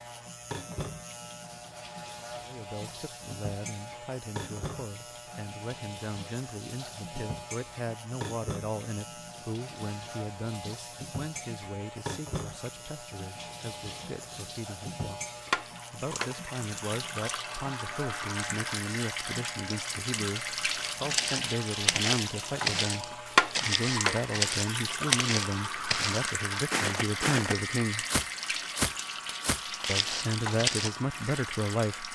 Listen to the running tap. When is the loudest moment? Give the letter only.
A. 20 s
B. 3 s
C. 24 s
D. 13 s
C.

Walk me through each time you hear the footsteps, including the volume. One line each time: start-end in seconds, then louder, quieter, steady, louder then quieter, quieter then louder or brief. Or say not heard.
20.8-31.2 steady.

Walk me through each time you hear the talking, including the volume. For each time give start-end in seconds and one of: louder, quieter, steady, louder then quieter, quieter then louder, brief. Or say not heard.
2.4-28.1 louder
29.9-32.1 brief.